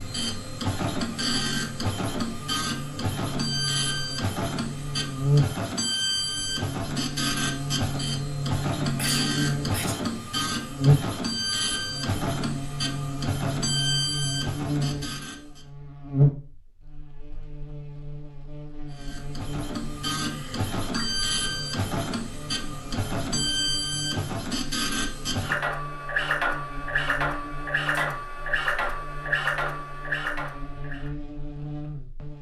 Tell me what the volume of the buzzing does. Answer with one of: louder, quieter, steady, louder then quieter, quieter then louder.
quieter.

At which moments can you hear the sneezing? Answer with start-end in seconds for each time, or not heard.
8.9-9.9, 20.2-21.1.